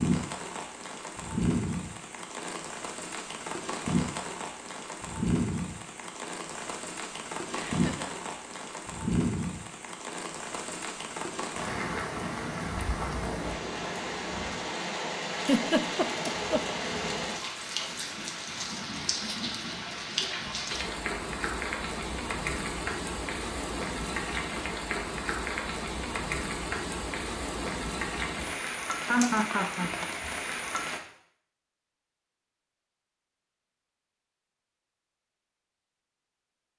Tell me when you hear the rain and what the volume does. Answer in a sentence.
You can hear the rain from 0.0 to 31.0 s, at a steady volume.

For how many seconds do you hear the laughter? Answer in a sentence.
You can hear the laughter for 3 seconds altogether.